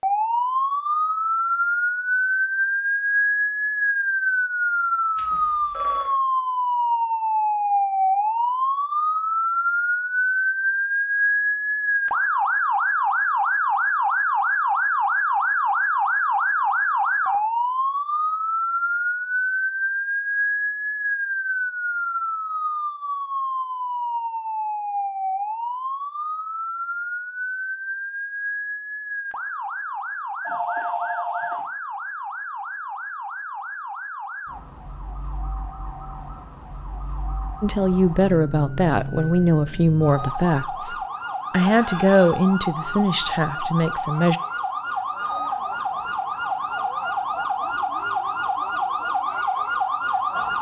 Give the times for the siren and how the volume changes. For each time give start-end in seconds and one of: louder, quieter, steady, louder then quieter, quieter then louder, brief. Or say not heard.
0.0-50.5 quieter then louder.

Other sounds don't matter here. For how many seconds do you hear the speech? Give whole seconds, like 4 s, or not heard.
7 s.